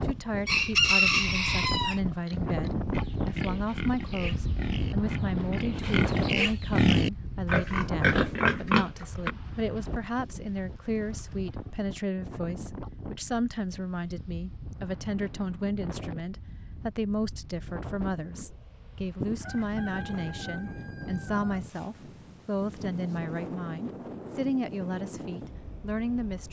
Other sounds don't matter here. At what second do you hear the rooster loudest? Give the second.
1 s.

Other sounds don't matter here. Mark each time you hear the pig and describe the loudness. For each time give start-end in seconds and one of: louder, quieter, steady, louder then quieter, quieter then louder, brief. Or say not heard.
2.2-9.3 louder.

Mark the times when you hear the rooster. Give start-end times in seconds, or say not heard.
0.5-2.0, 19.2-22.4.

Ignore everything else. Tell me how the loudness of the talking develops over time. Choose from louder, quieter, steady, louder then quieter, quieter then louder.
steady.